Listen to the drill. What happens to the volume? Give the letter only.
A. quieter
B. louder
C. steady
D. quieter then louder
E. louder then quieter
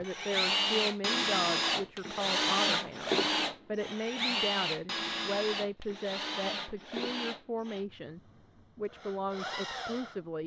A.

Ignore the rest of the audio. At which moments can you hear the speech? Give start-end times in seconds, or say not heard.
0.0-10.4.